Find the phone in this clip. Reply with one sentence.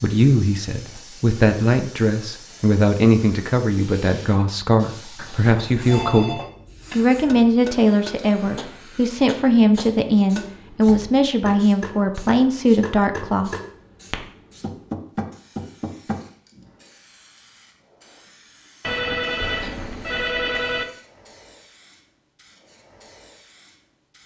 The phone can be heard from 5.2 to 6.5 s and from 18.8 to 20.9 s.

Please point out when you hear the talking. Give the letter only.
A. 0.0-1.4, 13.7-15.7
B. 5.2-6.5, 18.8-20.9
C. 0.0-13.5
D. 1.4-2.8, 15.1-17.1
C.